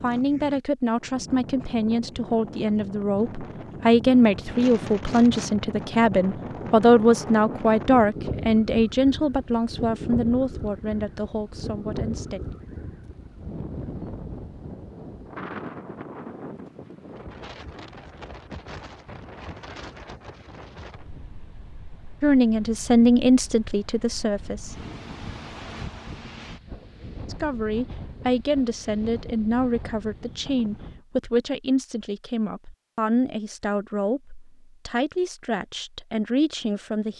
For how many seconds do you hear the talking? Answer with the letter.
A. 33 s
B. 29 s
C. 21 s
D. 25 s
D.